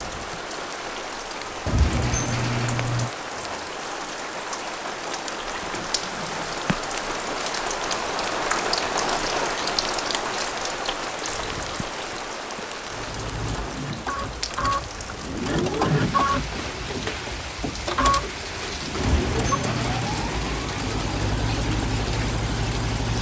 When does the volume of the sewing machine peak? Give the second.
16 s.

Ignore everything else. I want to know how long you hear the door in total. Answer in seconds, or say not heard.
3 s.